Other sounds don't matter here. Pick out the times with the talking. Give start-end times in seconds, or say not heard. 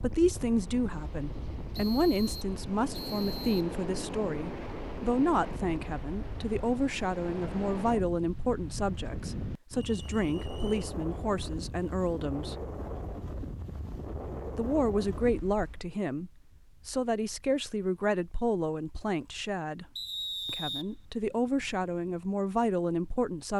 0.0-12.6, 14.6-19.9, 20.4-23.5.